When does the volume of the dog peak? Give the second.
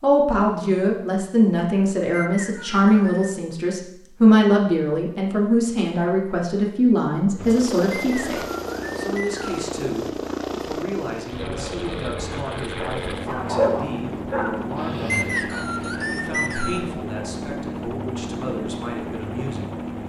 14 s.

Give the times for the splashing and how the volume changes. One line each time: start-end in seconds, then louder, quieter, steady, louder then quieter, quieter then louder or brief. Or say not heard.
not heard.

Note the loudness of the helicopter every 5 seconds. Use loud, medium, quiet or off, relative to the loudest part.
off, loud, loud, loud.